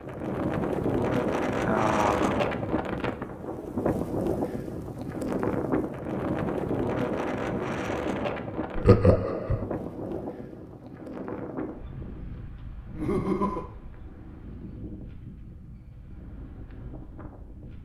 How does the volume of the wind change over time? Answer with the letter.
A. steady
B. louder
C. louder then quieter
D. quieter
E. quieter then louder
D.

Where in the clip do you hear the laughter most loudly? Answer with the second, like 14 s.
9 s.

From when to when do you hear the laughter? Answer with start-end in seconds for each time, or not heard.
1.6-2.4, 8.8-9.7, 12.9-13.7.